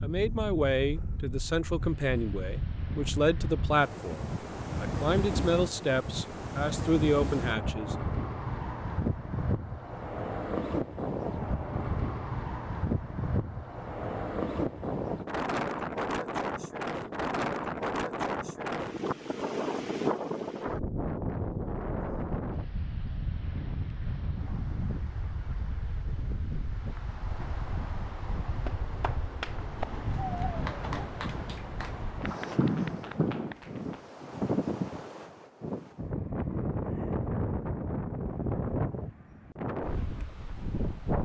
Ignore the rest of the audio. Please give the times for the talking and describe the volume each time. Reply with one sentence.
You can hear the talking from 0.0 to 8.0 s, at a steady volume.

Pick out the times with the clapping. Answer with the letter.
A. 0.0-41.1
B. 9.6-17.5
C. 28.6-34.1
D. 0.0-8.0
C.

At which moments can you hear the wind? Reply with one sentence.
The wind can be heard from 0.0 to 41.1 s.